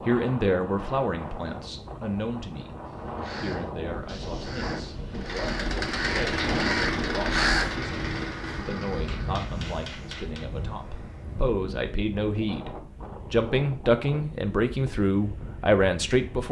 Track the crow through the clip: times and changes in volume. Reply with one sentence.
The crow can be heard from 2.9 to 7.8 s, getting louder.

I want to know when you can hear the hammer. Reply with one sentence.
You can hear the hammer from 8.9 to 10.5 s.